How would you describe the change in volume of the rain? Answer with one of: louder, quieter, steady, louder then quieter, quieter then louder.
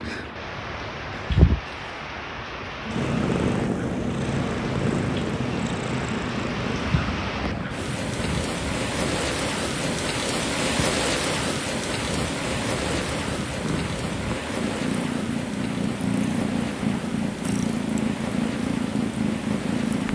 louder then quieter.